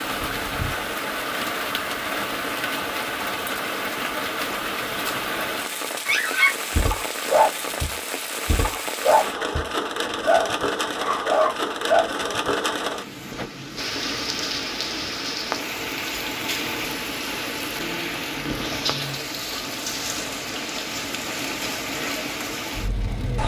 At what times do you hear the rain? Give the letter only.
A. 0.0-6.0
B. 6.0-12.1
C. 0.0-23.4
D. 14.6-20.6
C.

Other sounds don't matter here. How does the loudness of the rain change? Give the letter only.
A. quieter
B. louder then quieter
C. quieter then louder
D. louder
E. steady
E.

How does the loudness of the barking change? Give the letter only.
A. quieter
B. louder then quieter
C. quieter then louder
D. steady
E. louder
C.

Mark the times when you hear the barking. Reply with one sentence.
The barking can be heard from 6.0 to 12.1 s.